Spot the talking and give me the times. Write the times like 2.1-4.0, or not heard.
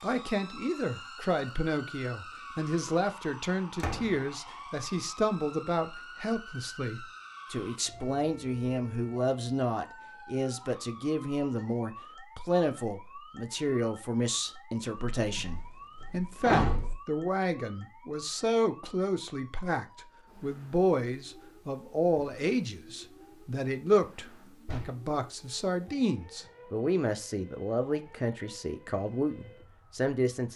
0.0-30.5.